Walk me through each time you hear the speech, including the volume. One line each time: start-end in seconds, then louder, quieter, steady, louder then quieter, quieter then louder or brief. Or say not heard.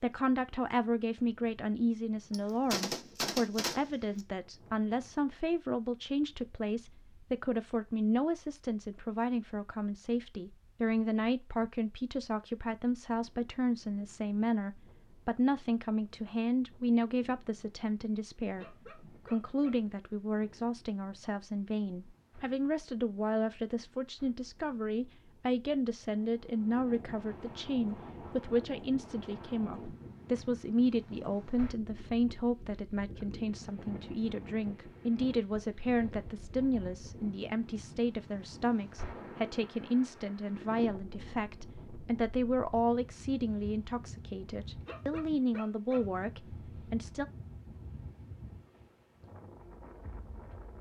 0.0-18.6 steady
19.2-47.2 steady.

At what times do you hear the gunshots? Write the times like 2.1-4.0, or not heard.
2.3-4.2.